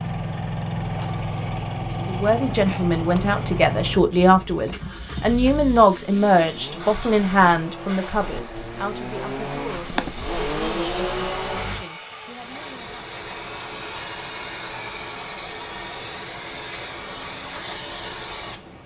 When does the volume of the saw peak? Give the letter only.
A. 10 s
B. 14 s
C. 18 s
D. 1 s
A.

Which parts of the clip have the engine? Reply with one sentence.
The engine can be heard from 0.0 to 11.8 s.